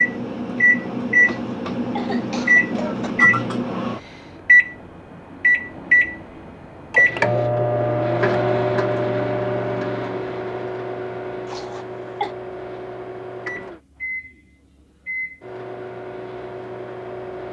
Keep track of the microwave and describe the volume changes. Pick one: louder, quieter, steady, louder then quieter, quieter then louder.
quieter.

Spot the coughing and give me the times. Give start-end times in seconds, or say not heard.
1.2-3.1, 11.4-12.3.